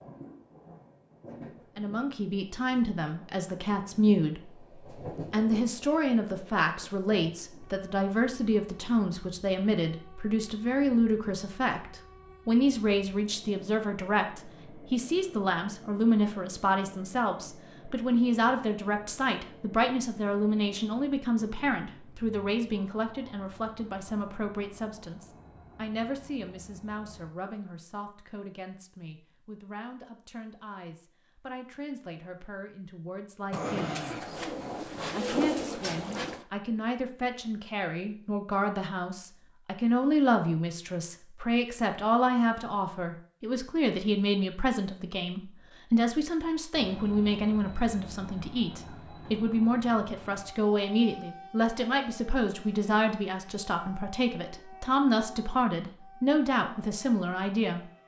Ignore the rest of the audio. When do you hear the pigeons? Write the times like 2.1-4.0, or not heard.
33.5-36.5.